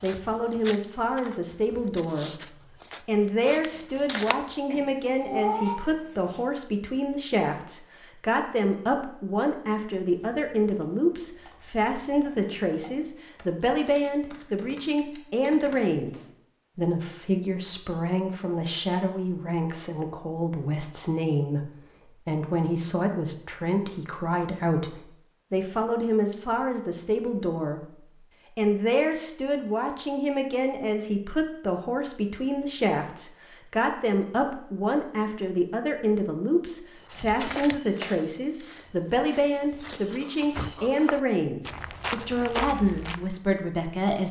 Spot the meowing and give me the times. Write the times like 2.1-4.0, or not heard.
4.7-6.4.